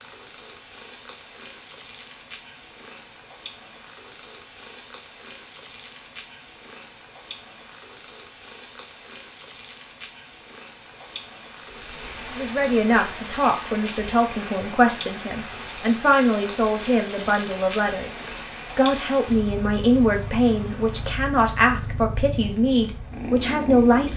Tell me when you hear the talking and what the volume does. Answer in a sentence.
You can hear the talking from 12.3 to 24.1 s, at a steady volume.